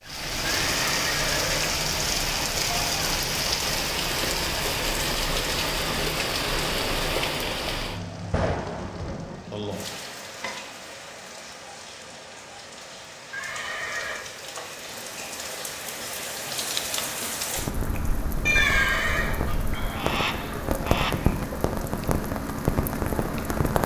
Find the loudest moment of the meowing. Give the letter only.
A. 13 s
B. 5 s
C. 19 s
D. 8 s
C.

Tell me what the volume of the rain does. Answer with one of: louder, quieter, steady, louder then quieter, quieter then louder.
quieter then louder.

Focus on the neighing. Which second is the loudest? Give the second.
19 s.